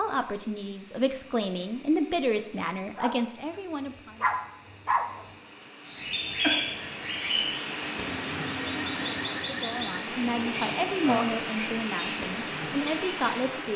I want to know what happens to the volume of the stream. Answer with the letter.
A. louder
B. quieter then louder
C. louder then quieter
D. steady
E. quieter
A.